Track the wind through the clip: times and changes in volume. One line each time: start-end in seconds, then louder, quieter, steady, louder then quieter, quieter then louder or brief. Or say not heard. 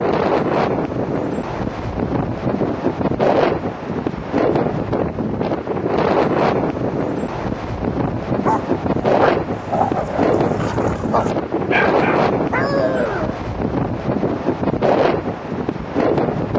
0.0-16.5 steady.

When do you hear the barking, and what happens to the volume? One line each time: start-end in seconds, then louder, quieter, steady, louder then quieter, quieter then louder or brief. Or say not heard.
8.3-13.4 louder.